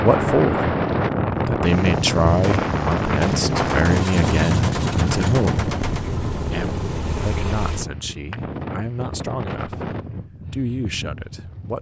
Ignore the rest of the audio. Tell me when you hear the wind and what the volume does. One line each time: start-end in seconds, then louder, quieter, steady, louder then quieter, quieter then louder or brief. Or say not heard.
0.0-11.7 quieter.